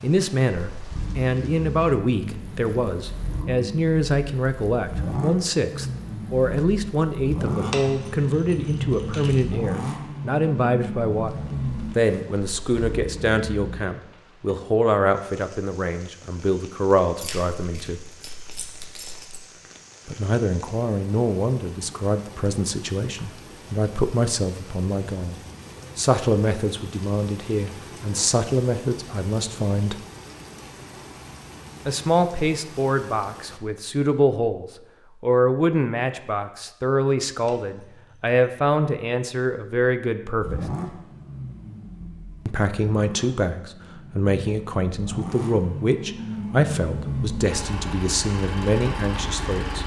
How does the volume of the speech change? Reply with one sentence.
The volume of the speech stays about the same.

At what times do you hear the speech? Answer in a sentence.
You can hear the speech from 0.0 to 11.3 s, from 11.9 to 18.0 s, from 20.1 to 29.9 s, from 31.9 to 40.6 s and from 42.5 to 49.8 s.